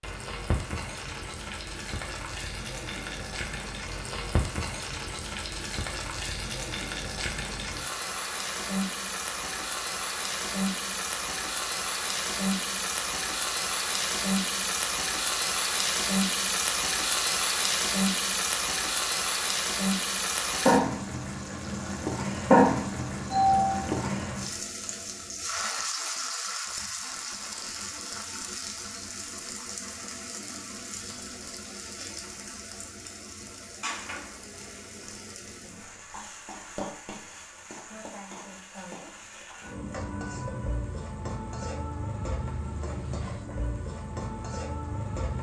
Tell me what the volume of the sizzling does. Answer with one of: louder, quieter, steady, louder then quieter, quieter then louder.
louder then quieter.